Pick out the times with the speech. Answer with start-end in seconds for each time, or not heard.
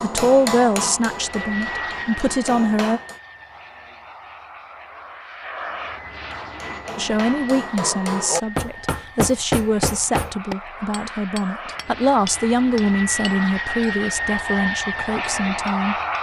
0.0-3.0, 7.0-15.9.